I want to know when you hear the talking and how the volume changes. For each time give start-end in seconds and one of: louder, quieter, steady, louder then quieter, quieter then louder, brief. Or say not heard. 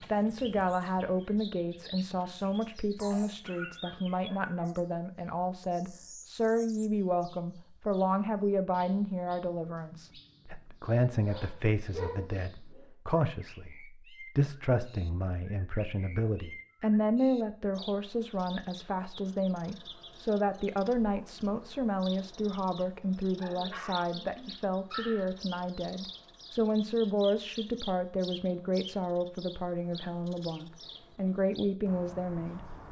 0.0-32.6 steady.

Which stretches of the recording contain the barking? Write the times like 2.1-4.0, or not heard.
3.0-4.8, 11.2-12.9, 23.4-25.3.